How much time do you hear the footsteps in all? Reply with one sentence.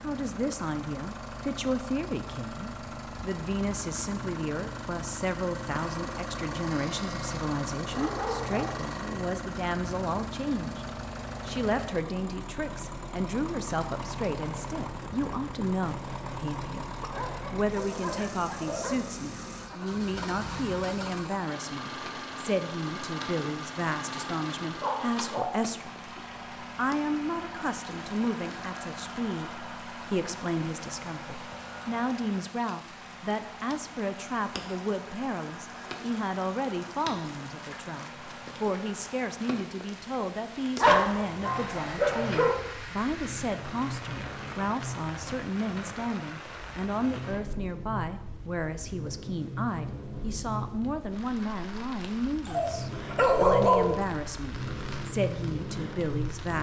The footsteps can't be heard in this clip.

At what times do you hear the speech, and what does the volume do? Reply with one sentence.
You can hear the speech from 0.0 to 56.5 s, at a steady volume.